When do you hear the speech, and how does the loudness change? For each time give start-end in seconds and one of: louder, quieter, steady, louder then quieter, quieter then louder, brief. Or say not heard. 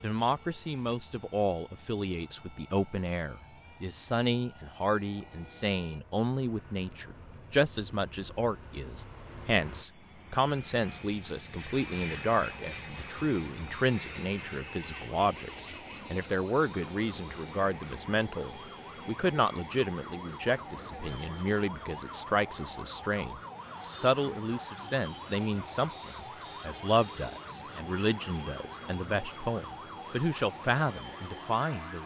0.0-32.0 steady.